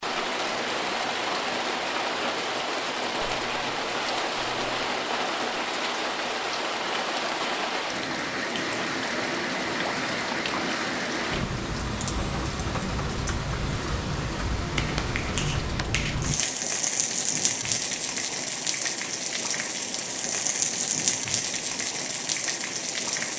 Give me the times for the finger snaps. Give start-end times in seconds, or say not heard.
3.2-5.0, 14.8-16.1.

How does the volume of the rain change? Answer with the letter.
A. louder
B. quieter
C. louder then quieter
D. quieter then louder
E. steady
E.